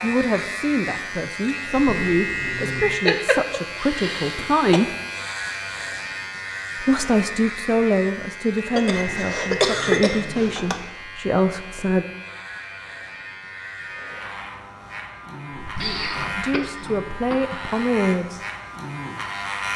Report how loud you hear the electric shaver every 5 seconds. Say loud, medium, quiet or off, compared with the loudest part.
loud, loud, medium, loud.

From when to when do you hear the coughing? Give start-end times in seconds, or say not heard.
3.0-4.8, 8.8-10.8, 15.8-17.5.